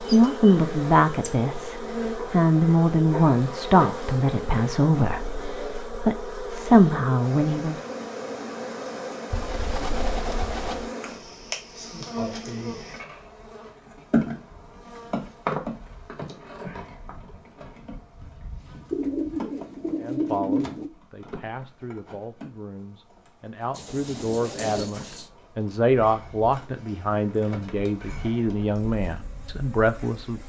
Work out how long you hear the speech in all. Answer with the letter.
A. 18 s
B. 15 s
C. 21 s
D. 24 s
A.